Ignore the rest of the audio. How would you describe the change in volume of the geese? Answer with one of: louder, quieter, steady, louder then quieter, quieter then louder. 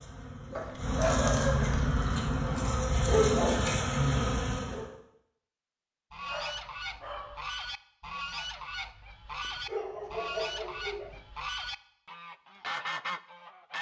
steady.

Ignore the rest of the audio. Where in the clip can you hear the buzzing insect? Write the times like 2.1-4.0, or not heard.
0.0-4.8.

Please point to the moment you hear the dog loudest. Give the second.
1 s.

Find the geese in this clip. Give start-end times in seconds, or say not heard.
6.1-13.7.